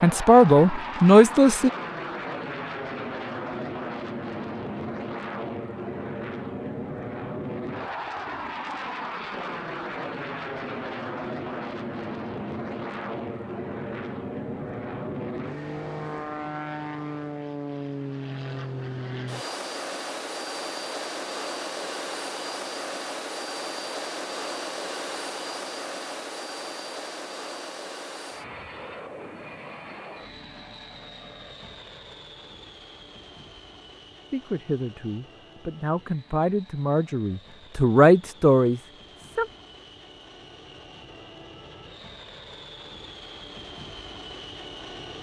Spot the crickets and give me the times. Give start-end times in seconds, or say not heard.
not heard.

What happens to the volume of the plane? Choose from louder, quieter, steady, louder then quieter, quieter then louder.
quieter.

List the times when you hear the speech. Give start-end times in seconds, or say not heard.
0.0-1.7, 34.3-39.5.